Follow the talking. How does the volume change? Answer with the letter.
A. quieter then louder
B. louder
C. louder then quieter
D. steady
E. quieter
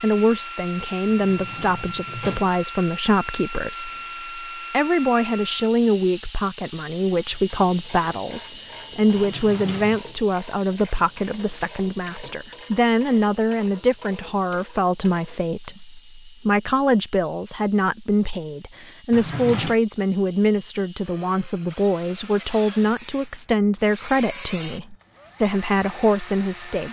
D.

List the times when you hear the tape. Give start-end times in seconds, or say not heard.
not heard.